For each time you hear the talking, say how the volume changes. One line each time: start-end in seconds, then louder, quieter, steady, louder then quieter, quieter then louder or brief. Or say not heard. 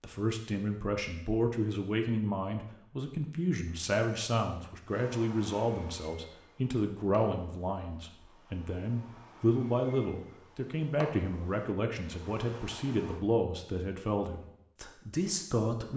0.0-15.9 steady.